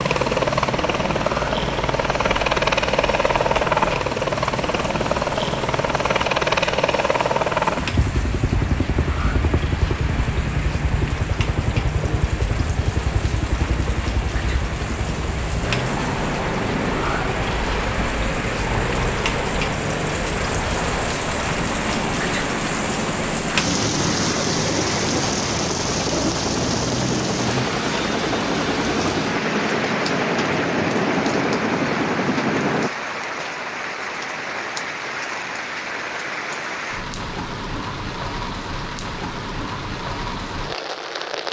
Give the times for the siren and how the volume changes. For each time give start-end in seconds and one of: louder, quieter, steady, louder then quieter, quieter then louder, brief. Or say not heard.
not heard.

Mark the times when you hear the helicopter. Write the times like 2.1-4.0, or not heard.
0.0-32.9.